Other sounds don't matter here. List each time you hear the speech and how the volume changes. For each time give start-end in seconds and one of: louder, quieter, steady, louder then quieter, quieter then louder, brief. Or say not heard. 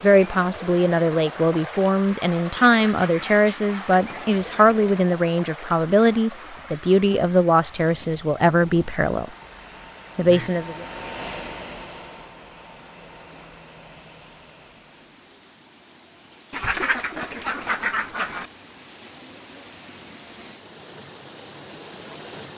0.0-9.3 steady
10.2-10.8 brief.